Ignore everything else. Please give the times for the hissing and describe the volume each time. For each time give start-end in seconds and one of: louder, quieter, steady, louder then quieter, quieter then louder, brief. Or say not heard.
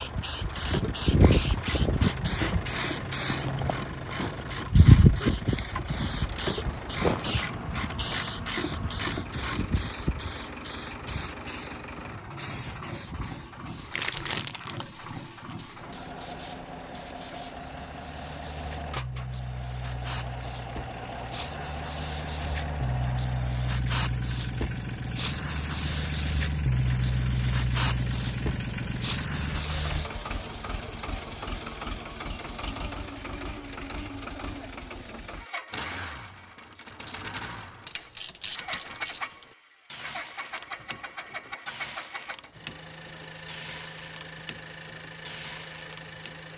0.0-30.1 quieter then louder.